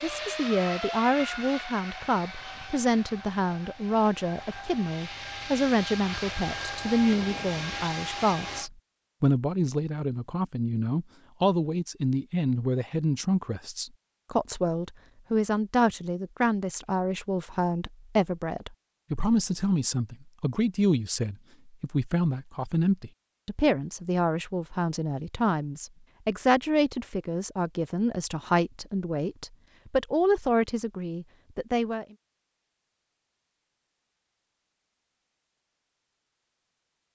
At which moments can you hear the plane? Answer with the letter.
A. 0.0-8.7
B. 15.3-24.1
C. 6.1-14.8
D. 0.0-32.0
A.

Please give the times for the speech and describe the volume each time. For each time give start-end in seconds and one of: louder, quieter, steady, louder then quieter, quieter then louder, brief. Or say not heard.
0.0-32.0 steady.